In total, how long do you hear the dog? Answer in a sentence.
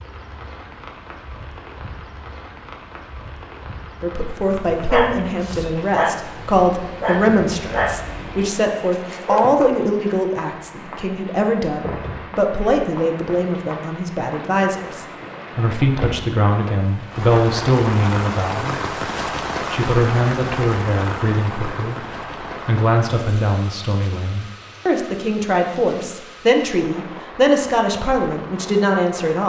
The dog can be heard for 5 seconds in total.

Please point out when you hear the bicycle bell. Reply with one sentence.
The bicycle bell can't be heard in this clip.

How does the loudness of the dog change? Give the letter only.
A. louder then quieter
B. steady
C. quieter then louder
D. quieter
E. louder
D.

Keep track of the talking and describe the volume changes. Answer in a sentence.
The volume of the talking stays about the same.